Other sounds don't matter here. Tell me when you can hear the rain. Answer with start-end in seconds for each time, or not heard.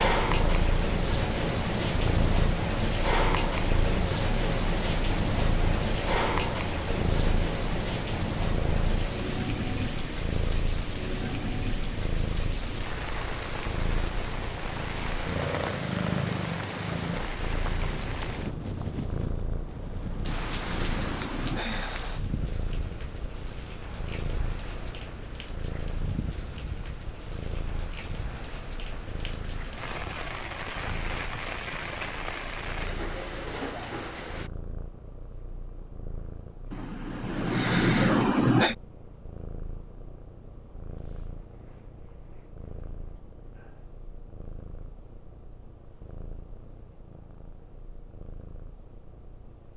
0.0-34.5.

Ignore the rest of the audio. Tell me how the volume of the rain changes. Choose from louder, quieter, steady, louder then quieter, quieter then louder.
quieter.